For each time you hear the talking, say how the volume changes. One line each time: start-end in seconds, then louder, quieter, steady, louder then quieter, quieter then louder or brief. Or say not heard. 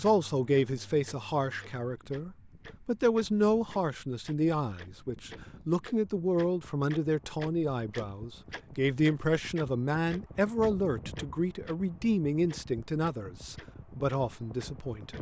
0.0-15.1 steady.